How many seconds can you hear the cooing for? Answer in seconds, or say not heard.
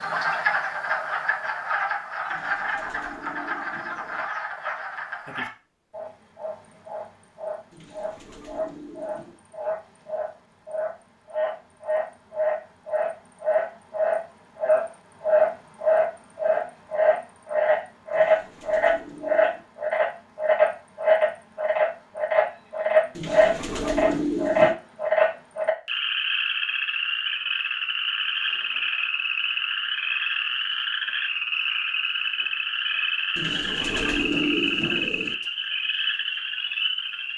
9 s.